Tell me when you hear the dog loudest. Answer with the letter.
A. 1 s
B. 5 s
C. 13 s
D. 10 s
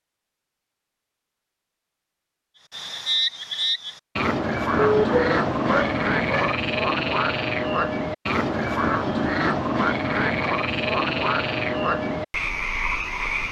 B.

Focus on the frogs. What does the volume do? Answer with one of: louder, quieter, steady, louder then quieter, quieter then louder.
steady.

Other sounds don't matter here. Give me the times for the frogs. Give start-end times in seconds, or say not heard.
2.7-13.4.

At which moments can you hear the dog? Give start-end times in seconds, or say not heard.
4.8-6.5.